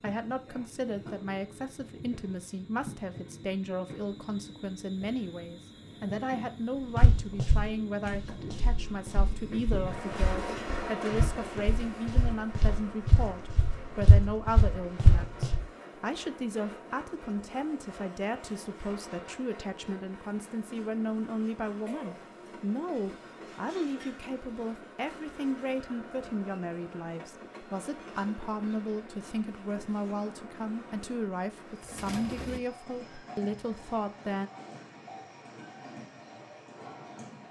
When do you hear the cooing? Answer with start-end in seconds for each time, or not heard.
31.9-32.6.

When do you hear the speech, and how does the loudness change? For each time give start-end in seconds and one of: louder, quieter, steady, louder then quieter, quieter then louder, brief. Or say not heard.
0.0-34.5 steady.